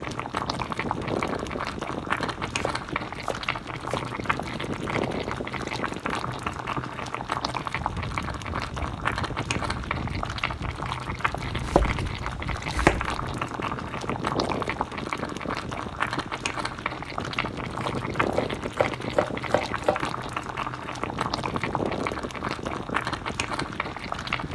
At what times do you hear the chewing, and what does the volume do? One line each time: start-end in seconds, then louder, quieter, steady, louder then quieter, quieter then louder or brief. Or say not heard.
not heard.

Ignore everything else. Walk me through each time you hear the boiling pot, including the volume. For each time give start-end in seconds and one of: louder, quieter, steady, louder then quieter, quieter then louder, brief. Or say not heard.
0.0-24.5 steady.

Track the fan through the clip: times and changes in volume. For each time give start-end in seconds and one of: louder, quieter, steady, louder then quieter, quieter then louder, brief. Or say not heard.
0.0-24.5 steady.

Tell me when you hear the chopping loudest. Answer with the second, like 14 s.
13 s.